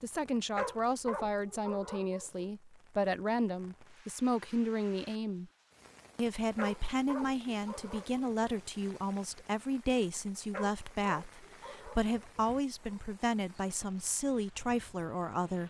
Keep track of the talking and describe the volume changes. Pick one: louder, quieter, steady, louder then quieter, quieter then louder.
steady.